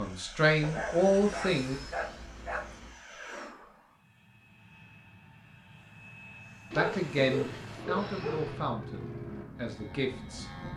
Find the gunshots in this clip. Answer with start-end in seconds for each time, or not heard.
not heard.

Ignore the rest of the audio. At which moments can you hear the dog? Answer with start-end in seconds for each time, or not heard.
0.6-3.0, 6.7-8.7.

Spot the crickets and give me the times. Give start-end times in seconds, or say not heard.
not heard.